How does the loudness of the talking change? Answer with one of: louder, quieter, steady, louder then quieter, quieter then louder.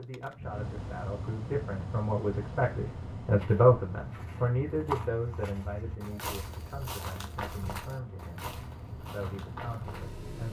louder then quieter.